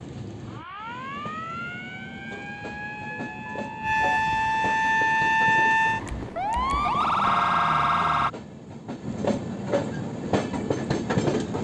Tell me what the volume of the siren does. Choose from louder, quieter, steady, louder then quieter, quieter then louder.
louder.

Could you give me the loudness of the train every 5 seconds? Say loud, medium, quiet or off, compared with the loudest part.
quiet, medium, loud.